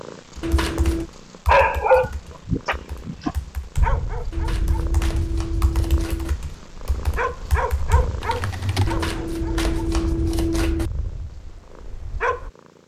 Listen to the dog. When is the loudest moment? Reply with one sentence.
The volume of the dog peaks at 2 seconds.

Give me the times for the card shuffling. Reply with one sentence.
The card shuffling can be heard from 0.4 to 1.1 s, from 4.3 to 6.3 s and from 8.8 to 10.9 s.